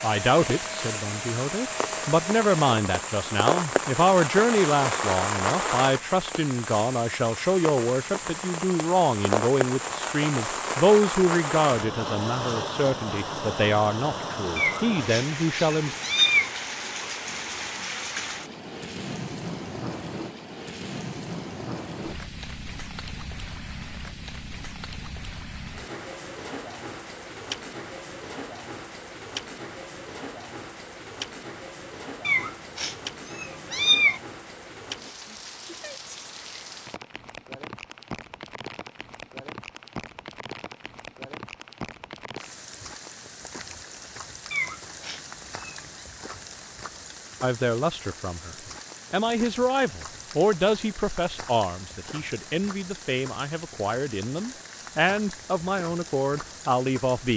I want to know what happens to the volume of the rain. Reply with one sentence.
The volume of the rain goes down.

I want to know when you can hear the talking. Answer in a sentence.
You can hear the talking from 0.0 to 15.9 s and from 47.4 to 57.3 s.